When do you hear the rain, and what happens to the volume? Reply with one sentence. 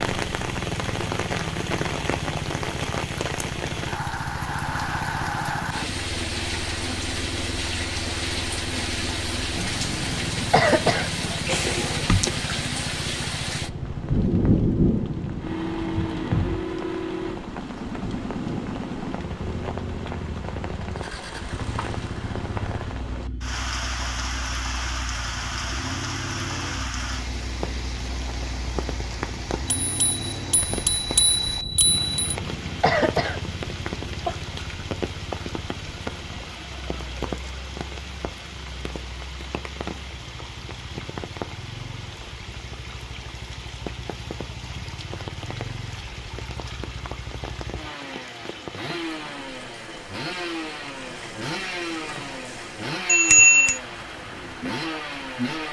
You can hear the rain from 0.0 to 55.6 s, getting quieter.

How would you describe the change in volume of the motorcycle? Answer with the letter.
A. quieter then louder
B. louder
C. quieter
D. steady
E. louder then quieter
A.